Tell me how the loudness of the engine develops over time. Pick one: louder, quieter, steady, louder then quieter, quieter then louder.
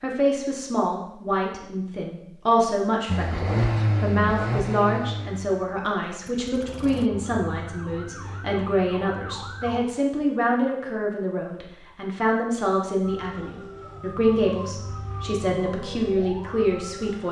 quieter.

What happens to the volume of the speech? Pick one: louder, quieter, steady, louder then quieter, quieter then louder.
steady.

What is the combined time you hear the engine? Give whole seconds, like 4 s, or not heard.
4 s.